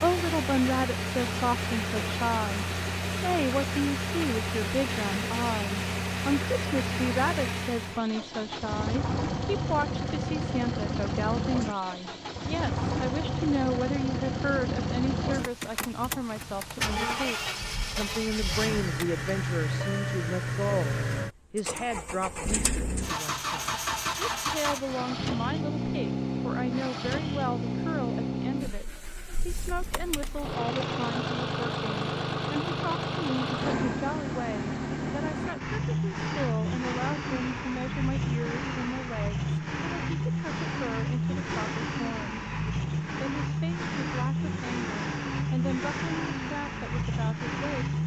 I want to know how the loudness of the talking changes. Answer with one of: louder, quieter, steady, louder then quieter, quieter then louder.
quieter.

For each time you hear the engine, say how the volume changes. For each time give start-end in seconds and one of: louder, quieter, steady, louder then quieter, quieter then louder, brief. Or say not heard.
0.0-48.0 steady.